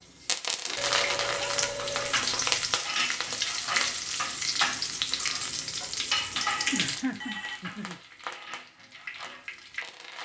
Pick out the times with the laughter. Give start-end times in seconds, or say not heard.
0.7-2.6, 6.7-8.0.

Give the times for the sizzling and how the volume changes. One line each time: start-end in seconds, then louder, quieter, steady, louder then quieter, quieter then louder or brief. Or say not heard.
0.1-10.1 quieter.